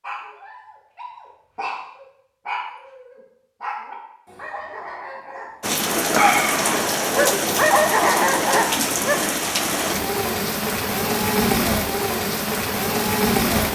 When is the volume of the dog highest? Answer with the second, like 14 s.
8 s.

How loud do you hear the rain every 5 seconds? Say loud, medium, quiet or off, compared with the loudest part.
off, loud, loud.